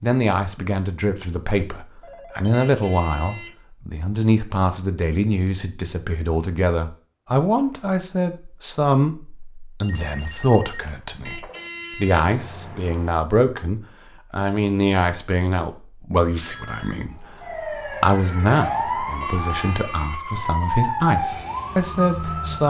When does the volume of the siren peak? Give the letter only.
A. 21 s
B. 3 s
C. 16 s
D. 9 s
A.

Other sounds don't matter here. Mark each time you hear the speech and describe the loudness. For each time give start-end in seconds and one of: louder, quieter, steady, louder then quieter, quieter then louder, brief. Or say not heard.
0.0-22.6 steady.